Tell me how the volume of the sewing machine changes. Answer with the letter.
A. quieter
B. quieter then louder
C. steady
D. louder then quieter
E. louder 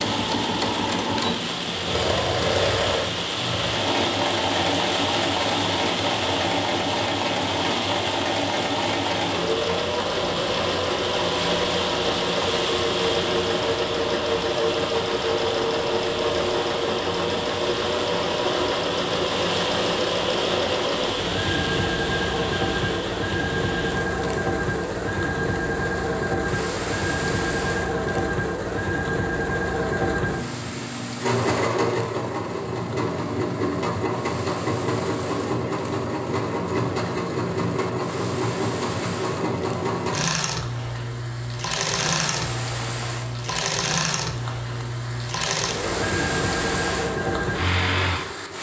C.